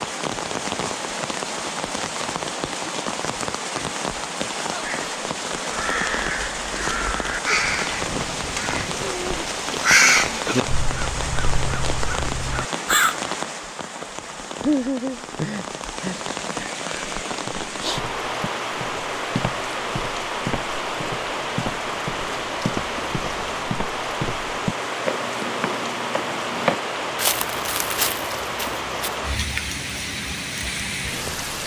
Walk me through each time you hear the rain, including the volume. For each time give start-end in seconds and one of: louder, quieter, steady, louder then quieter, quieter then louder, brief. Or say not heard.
0.0-31.6 steady.